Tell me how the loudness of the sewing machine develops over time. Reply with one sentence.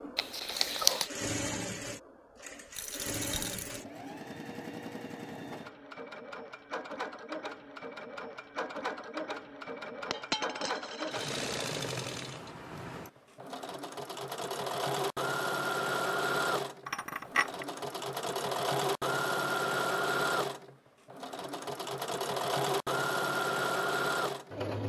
The loudness of the sewing machine goes up.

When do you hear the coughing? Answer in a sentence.
You can hear the coughing from 0.1 to 1.1 s.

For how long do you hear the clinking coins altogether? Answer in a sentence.
The clinking coins can be heard for 3 seconds in total.